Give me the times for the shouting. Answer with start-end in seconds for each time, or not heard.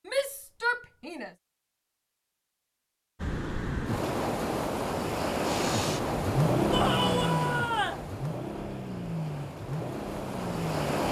0.1-1.3, 6.7-8.1.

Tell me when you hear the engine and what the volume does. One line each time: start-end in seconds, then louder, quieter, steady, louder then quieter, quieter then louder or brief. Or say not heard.
5.4-11.0 quieter.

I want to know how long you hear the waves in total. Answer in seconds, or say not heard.
8 s.